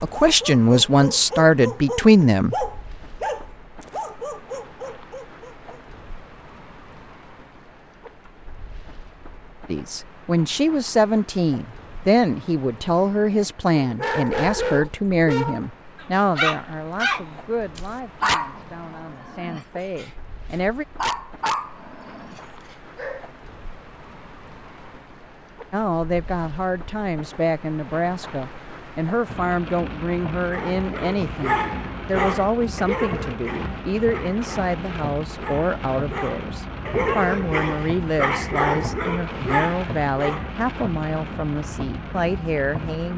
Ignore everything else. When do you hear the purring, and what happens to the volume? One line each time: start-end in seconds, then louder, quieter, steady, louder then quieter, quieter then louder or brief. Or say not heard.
not heard.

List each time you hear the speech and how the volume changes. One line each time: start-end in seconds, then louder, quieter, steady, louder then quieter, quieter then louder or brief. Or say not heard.
0.0-2.5 brief
9.7-20.9 quieter
25.7-43.1 steady.